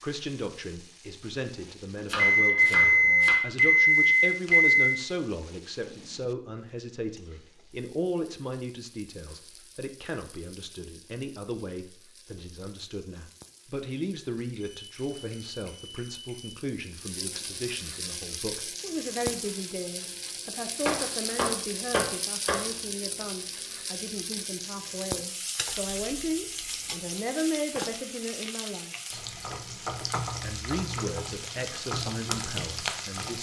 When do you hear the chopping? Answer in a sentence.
You can hear the chopping from 2.0 to 3.4 s and from 20.9 to 22.6 s.